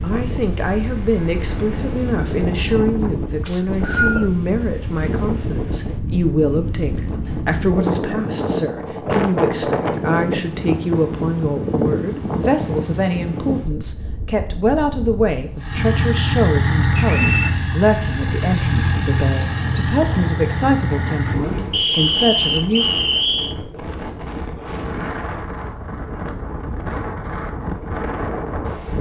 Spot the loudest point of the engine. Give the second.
17 s.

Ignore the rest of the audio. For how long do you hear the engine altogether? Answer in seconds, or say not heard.
6 s.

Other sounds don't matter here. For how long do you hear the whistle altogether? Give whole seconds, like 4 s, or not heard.
3 s.